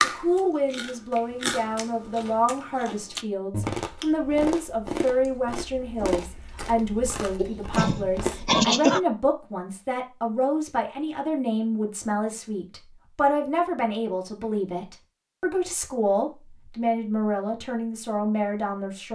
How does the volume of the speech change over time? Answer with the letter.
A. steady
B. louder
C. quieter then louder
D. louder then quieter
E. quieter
A.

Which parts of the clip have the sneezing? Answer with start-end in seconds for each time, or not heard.
7.3-9.0.